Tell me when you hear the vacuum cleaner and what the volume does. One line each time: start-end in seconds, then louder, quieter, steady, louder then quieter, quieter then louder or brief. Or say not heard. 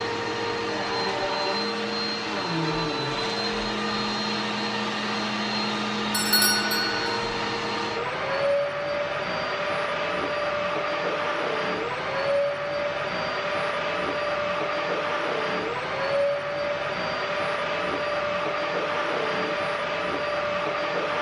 0.0-21.1 steady.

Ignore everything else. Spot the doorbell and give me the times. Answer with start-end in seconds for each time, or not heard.
6.1-7.2.